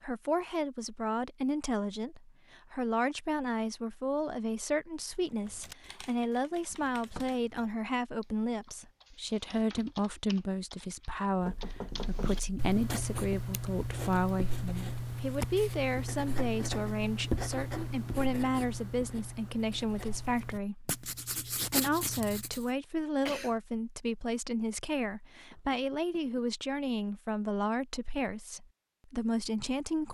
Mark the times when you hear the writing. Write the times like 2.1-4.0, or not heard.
11.9-22.6.